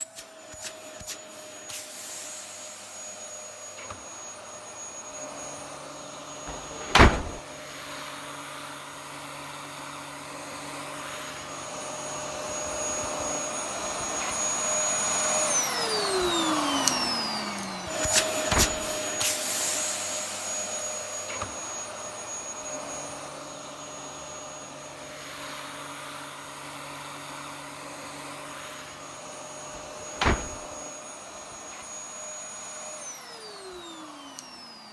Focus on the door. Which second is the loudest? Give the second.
7 s.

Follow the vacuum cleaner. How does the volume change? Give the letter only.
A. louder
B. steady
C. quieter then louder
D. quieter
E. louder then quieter
E.